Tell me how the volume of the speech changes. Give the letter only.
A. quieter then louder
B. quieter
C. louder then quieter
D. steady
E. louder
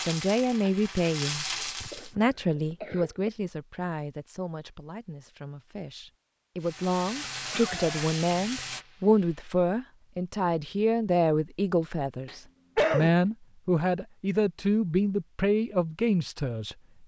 A.